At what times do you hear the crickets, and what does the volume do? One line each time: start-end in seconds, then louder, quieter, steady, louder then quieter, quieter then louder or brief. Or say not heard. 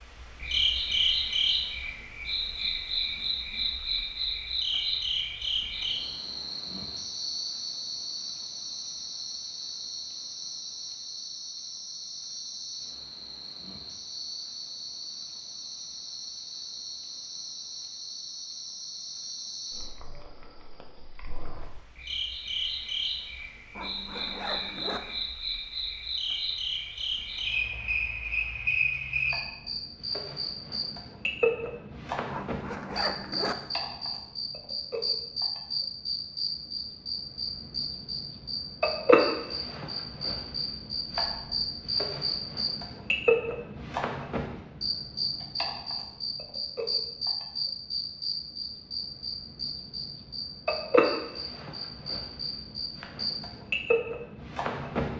0.0-55.1 quieter then louder.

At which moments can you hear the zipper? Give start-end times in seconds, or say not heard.
23.8-25.0, 32.3-33.5.